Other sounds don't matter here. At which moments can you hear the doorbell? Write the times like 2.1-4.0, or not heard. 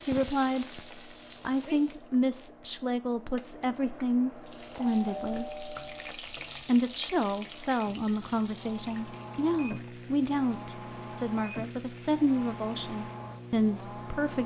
4.8-6.2.